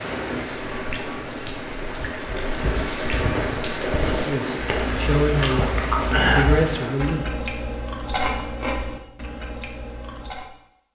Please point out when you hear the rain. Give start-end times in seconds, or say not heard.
0.0-7.2.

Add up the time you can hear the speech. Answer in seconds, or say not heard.
3 s.